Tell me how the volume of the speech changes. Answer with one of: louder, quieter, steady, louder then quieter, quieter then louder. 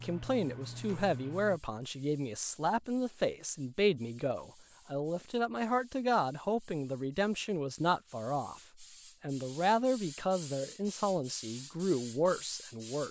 steady.